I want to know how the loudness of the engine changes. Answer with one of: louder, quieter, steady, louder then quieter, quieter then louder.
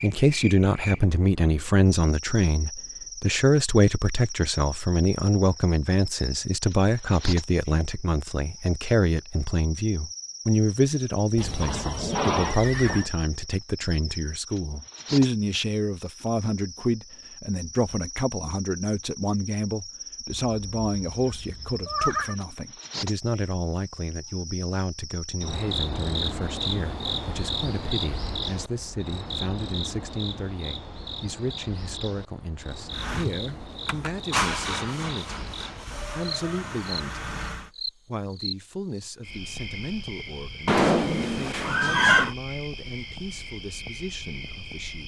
louder then quieter.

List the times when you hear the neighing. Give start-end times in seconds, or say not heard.
11.3-13.1, 20.4-22.4, 40.6-42.4.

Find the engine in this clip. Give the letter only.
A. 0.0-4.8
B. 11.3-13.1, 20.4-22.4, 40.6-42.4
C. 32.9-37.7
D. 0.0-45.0
C.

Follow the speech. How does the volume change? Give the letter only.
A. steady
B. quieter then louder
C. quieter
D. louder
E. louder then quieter
C.